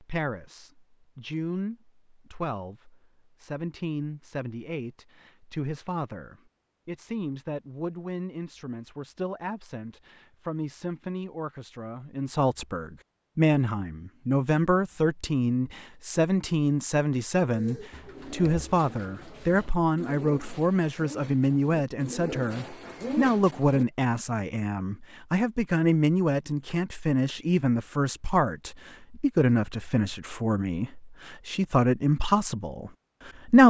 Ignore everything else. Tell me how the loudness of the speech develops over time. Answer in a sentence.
The loudness of the speech goes up.